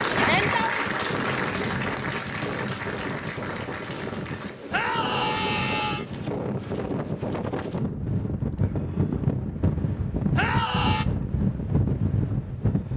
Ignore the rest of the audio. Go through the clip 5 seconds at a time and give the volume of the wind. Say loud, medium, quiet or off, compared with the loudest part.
medium, loud, loud.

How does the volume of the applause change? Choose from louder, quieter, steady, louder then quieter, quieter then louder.
quieter.